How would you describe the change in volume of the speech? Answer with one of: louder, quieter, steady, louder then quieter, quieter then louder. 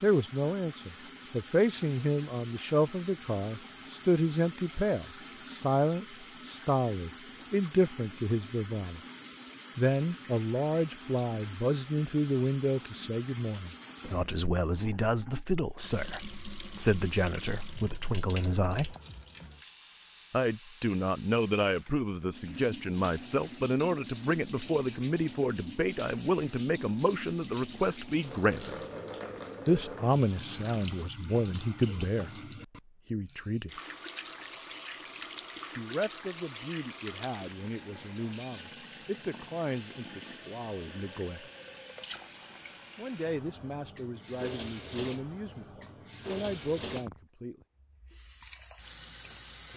quieter.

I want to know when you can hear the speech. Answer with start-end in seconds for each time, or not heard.
0.0-9.0, 9.8-18.9, 20.3-28.8, 29.6-33.8, 35.8-41.5, 43.0-47.6.